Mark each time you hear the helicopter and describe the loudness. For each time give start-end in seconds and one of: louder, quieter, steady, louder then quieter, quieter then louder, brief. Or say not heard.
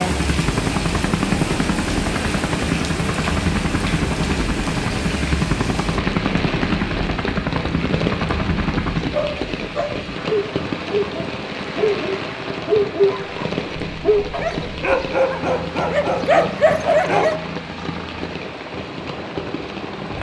0.0-20.1 quieter.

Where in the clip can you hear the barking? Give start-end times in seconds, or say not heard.
9.1-17.4.